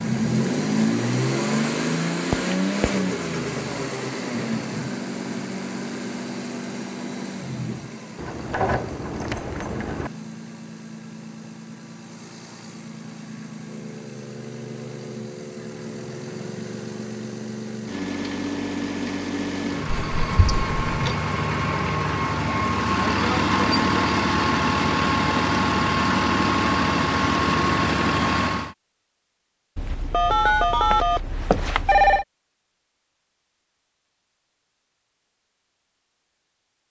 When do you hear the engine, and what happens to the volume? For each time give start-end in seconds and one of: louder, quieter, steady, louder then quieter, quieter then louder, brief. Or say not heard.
0.0-28.8 quieter then louder.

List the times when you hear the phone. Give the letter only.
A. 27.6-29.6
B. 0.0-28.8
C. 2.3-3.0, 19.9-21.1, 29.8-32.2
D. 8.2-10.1
C.